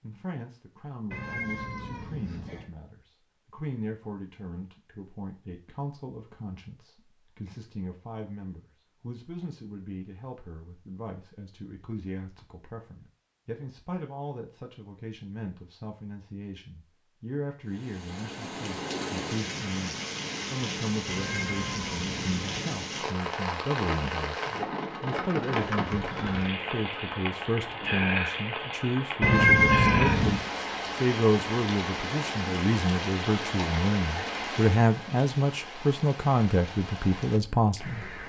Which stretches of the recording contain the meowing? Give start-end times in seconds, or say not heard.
1.1-2.7, 21.1-22.8, 29.2-30.4.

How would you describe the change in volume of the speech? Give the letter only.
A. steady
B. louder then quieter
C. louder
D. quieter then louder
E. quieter
C.